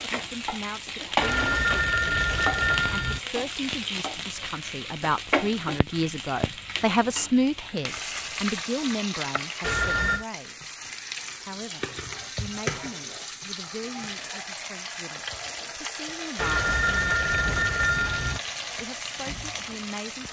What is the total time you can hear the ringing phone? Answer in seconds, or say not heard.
5 s.